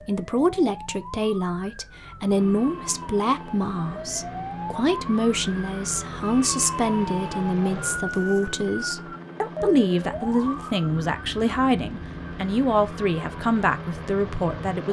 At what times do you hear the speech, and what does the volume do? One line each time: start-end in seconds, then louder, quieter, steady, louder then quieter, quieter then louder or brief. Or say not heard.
0.1-14.8 steady.